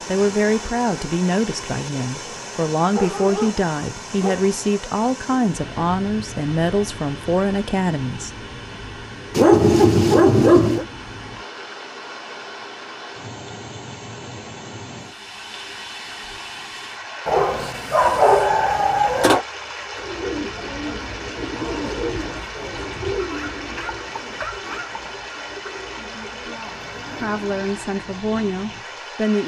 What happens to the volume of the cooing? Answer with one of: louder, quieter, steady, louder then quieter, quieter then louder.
quieter.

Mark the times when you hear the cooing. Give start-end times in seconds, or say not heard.
19.9-27.6.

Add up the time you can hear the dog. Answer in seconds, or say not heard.
7 s.